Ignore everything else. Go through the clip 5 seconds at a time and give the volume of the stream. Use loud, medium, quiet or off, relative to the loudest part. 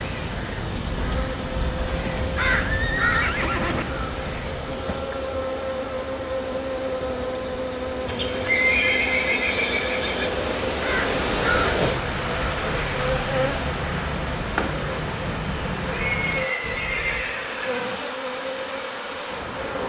medium, medium, loud, medium.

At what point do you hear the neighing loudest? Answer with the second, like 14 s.
9 s.